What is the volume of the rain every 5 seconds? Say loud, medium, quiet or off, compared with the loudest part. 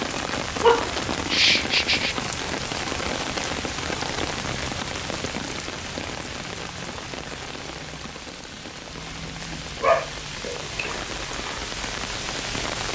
loud, medium, loud.